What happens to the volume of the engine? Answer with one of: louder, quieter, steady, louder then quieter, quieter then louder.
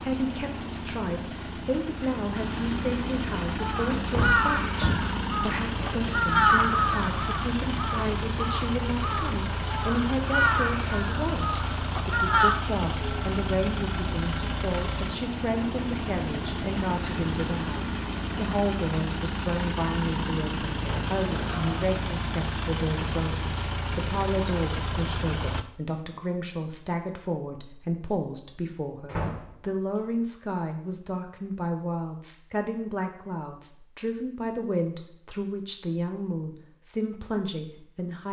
steady.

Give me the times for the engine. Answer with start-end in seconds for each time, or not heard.
0.0-25.6.